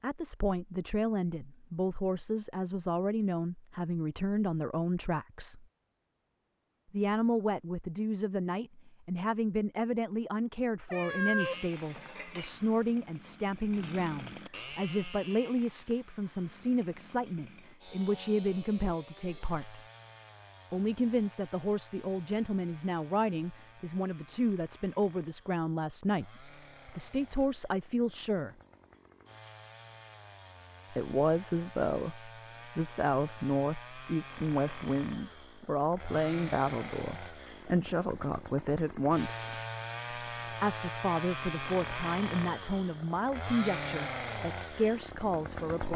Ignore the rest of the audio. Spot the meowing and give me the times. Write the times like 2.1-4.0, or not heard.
10.8-12.5.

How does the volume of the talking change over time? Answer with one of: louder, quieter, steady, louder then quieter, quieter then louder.
steady.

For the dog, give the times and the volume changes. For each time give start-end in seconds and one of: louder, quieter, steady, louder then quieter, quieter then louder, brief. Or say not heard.
not heard.